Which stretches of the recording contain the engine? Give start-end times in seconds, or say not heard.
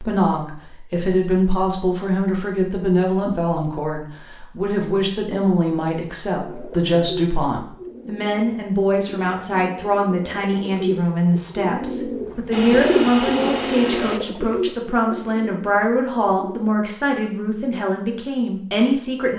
12.5-14.2.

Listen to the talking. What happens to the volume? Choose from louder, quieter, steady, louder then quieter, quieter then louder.
steady.